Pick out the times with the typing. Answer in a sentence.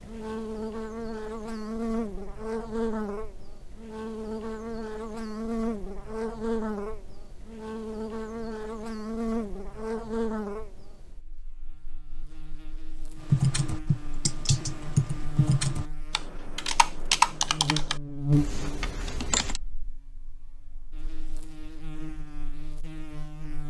The typing can be heard from 13.3 to 19.6 s.